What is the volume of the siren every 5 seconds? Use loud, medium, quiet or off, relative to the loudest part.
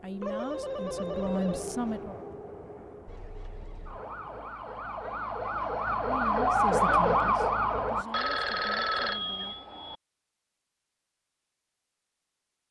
quiet, loud, off.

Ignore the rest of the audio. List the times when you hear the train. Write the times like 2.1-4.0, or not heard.
0.0-4.5.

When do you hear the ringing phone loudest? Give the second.
9 s.